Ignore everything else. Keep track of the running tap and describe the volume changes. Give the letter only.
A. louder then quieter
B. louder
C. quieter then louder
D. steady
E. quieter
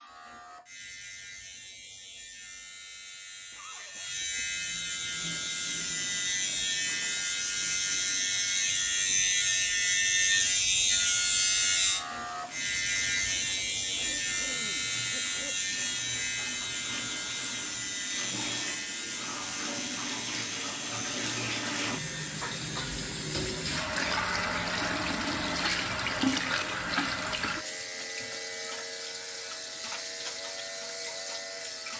B.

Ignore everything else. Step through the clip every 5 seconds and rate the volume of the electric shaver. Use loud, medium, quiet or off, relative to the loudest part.
quiet, loud, loud, medium, quiet, quiet, quiet.